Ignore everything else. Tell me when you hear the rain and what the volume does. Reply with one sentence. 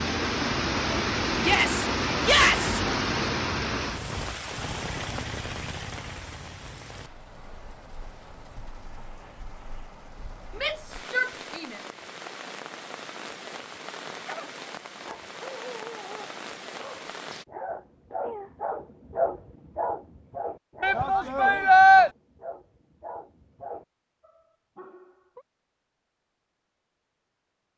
The rain can be heard from 0.0 to 17.4 s, getting quieter then louder.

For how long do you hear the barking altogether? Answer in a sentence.
The barking can be heard for 11 seconds in total.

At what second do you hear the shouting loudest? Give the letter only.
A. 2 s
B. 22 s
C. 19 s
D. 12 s
B.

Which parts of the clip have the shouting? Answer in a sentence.
The shouting can be heard from 1.4 to 2.8 s, from 10.6 to 11.8 s and from 20.8 to 22.1 s.